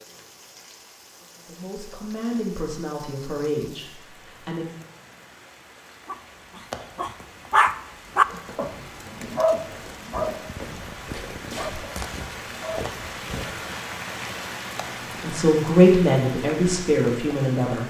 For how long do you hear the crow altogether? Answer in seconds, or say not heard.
not heard.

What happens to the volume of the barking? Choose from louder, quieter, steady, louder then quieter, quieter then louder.
quieter.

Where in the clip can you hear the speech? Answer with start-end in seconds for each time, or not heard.
1.4-4.7, 15.2-17.8.